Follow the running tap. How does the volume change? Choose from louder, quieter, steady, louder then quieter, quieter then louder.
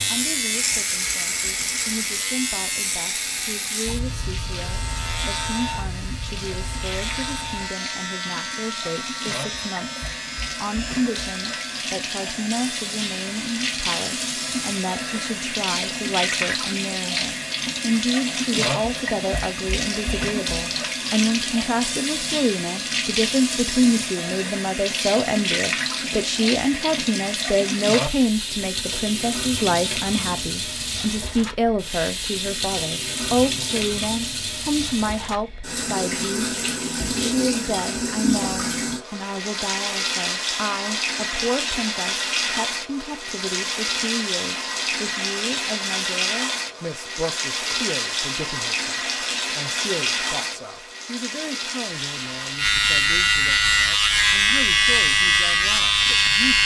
louder.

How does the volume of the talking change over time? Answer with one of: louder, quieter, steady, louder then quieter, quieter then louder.
louder then quieter.